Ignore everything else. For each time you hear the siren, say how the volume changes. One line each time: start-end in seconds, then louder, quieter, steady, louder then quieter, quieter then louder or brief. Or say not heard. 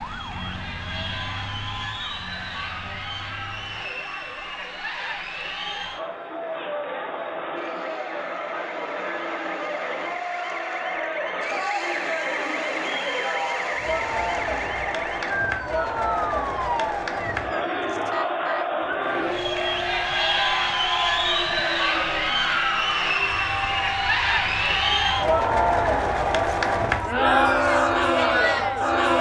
0.0-29.1 louder.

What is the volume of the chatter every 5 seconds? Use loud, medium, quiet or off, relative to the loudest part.
quiet, medium, medium, medium, loud, loud.